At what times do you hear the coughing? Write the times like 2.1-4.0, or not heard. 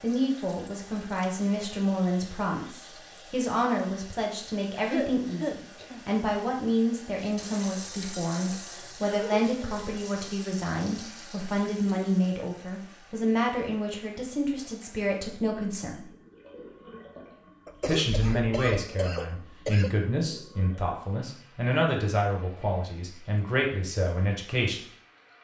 4.8-6.0, 9.0-9.8, 17.6-19.9.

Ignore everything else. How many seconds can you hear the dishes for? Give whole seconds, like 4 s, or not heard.
not heard.